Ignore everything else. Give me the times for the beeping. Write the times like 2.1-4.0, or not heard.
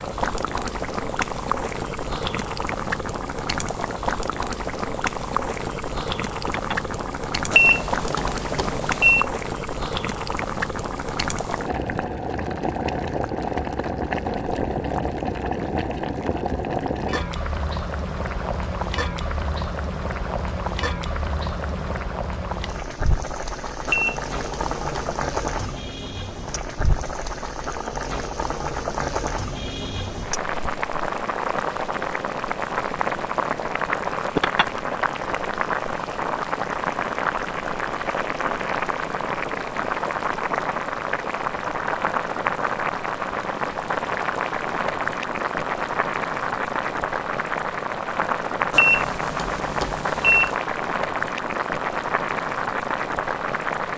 7.5-9.2, 23.9-25.1, 48.7-50.5.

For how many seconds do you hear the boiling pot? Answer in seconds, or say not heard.
54 s.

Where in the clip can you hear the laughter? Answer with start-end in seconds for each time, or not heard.
6.5-6.9, 34.4-35.0.